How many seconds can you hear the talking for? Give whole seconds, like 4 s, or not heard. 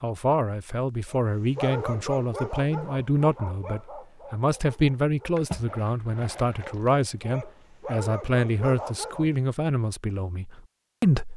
11 s.